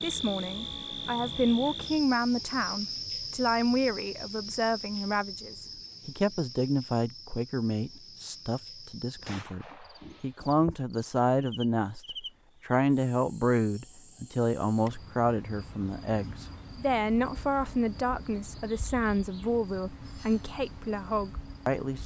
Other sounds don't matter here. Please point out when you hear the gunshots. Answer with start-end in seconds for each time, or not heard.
9.2-10.1.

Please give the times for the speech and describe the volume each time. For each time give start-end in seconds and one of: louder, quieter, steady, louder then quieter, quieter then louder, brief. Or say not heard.
0.0-22.0 steady.